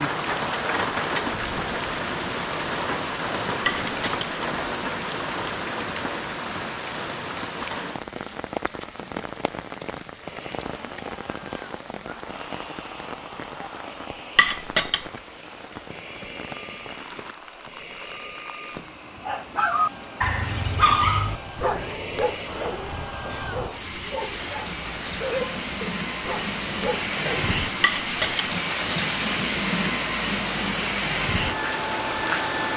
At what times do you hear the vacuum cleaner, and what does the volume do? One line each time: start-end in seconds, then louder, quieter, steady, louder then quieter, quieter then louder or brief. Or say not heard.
10.2-32.7 louder.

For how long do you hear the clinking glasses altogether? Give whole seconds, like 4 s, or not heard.
2 s.